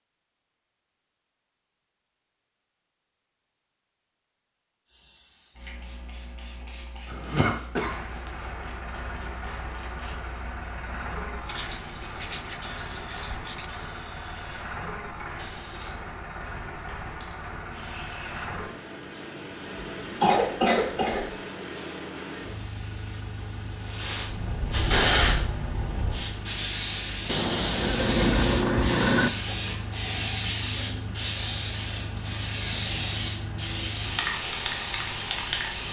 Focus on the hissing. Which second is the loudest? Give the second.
25 s.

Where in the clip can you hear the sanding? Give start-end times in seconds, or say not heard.
11.4-13.7, 27.2-29.3.